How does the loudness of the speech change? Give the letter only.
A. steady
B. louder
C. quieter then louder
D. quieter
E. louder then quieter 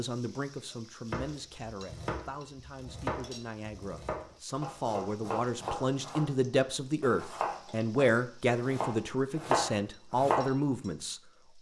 B.